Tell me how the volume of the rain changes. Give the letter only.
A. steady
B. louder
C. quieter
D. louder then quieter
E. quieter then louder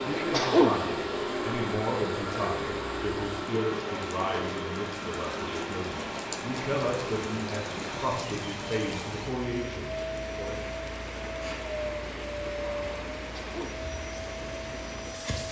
B.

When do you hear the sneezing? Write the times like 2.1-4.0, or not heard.
0.1-0.8, 13.2-13.8.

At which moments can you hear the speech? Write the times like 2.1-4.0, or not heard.
0.0-10.6.